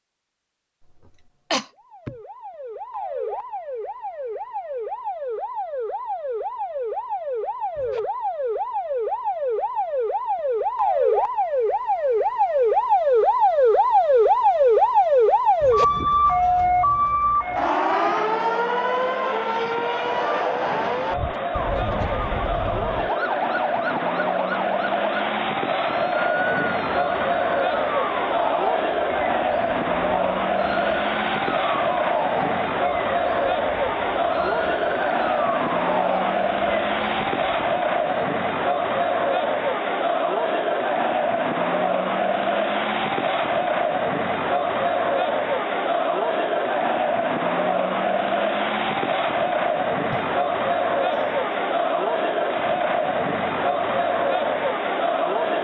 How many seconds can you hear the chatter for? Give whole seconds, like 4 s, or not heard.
39 s.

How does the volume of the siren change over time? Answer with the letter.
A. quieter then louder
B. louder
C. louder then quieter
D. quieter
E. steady
C.